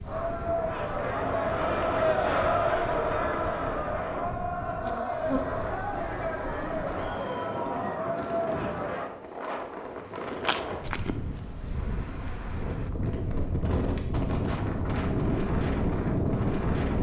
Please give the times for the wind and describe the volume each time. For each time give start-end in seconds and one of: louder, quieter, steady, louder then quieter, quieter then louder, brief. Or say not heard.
0.0-16.9 louder.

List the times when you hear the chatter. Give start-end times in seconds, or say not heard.
0.0-9.1.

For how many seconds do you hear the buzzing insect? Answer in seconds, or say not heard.
8 s.